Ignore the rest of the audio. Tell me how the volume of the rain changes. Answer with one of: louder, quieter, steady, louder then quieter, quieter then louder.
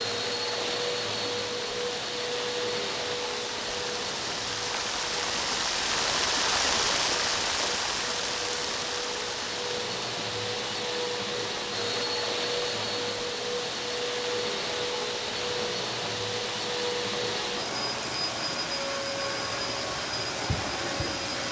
louder then quieter.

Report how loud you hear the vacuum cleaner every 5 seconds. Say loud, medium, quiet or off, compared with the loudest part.
loud, medium, loud, loud, loud.